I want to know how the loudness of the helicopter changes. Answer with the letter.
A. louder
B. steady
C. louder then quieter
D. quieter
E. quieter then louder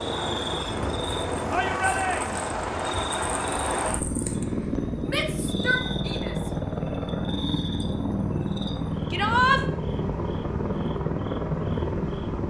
B.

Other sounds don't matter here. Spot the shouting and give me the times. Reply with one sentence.
You can hear the shouting from 1.5 to 2.5 s, from 5.0 to 6.5 s and from 9.1 to 9.6 s.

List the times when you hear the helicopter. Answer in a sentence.
You can hear the helicopter from 0.0 to 12.4 s.